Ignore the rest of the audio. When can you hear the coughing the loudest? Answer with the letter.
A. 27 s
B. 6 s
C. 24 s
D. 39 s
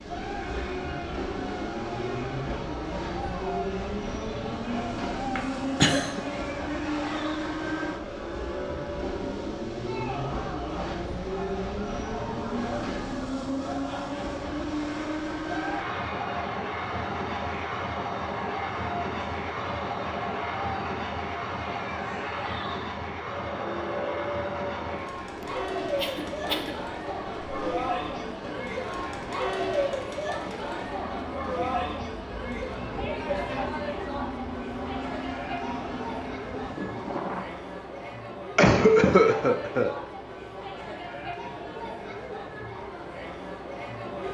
D.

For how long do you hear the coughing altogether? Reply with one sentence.
You can hear the coughing for 3 seconds altogether.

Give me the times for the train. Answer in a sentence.
The train can be heard from 0.0 to 37.5 s.